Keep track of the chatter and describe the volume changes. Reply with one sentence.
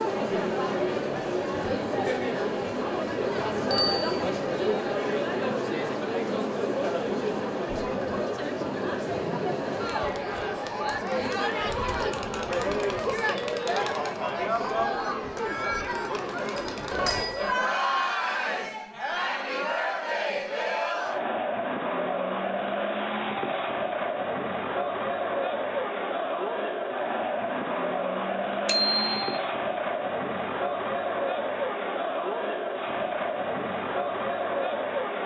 The volume of the chatter stays about the same.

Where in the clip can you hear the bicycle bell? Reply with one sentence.
You can hear the bicycle bell from 3.7 to 4.2 s, from 16.6 to 17.5 s and from 28.6 to 29.3 s.